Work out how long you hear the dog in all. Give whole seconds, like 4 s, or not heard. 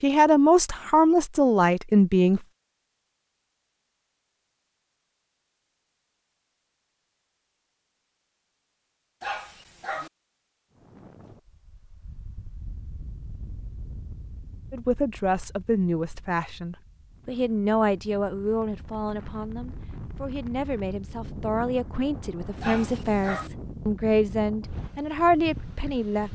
2 s.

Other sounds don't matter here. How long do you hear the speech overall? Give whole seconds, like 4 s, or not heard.
14 s.